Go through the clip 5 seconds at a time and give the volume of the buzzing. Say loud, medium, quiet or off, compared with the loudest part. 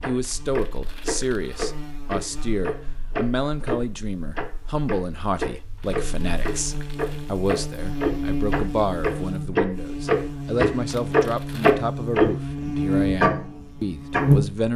quiet, medium, loud.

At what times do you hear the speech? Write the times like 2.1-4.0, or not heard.
0.1-14.7.